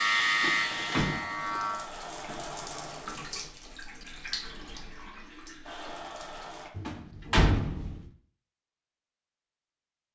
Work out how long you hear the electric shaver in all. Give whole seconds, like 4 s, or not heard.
2 s.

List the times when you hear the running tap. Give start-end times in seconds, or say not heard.
0.0-6.7.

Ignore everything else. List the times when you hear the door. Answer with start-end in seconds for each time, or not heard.
0.4-1.6, 6.8-8.0.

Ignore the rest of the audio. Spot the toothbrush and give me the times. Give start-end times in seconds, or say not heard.
not heard.